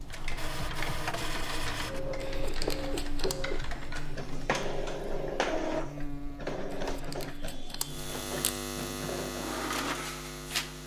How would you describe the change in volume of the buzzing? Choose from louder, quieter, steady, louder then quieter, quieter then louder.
louder.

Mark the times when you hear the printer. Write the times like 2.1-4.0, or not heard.
0.0-10.8.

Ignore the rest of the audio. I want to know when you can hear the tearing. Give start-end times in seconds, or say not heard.
2.1-3.4, 6.7-8.6.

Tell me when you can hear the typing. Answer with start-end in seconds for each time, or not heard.
0.0-4.3.